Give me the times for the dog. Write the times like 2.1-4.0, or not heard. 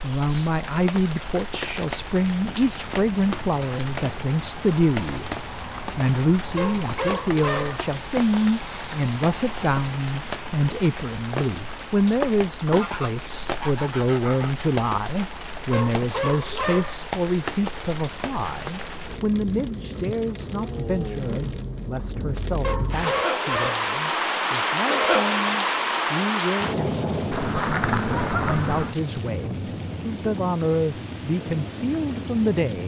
6.5-7.8, 15.7-17.1, 22.6-23.9.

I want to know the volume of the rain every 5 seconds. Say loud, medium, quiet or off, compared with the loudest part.
medium, medium, medium, medium, loud, loud, medium.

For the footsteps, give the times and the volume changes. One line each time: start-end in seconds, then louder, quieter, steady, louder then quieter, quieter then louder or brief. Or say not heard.
not heard.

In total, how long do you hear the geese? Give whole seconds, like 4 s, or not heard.
4 s.